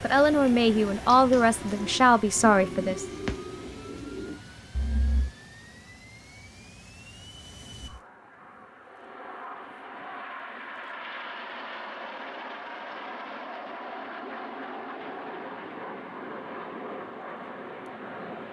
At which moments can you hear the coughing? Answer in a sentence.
The coughing can't be heard in this clip.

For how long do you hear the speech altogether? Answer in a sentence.
You can hear the speech for 3 seconds altogether.